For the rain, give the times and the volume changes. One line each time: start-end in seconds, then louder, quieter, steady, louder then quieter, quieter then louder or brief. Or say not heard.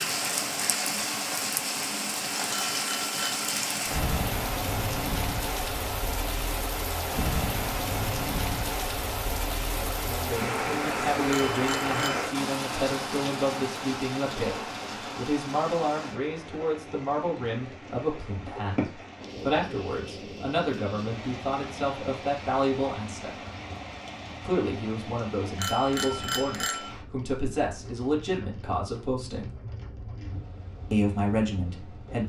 0.0-32.2 quieter.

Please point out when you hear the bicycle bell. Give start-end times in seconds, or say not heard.
2.5-3.4, 11.3-12.2, 25.6-26.9.